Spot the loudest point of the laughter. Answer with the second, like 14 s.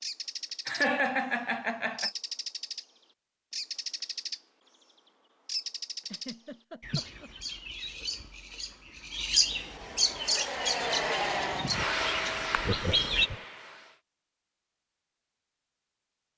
1 s.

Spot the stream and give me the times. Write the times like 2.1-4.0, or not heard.
not heard.